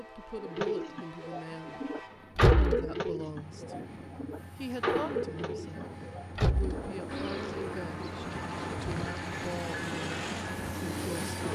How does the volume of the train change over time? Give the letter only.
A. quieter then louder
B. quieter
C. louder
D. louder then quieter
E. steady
C.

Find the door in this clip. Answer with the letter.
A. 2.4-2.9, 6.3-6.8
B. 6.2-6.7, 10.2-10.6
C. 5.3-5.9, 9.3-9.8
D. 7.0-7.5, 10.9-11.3
A.